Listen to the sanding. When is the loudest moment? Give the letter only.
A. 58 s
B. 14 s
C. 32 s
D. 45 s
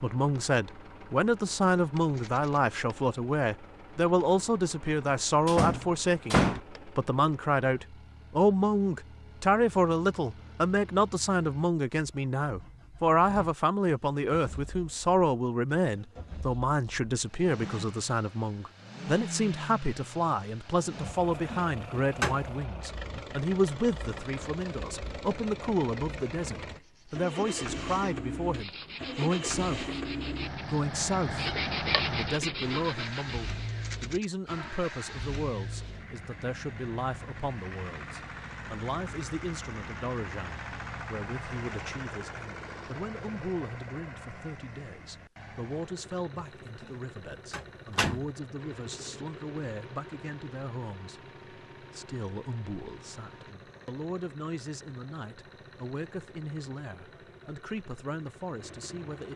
C.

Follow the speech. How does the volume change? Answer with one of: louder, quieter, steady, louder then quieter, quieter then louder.
quieter.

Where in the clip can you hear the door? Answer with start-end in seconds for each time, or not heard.
5.0-6.6, 21.1-22.6, 47.5-48.3.